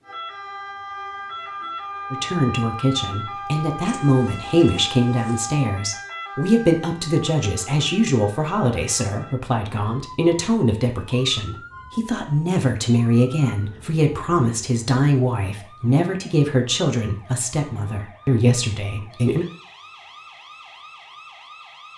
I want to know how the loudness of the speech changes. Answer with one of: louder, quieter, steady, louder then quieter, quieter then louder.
steady.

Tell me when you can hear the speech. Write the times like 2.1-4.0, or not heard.
2.1-19.4.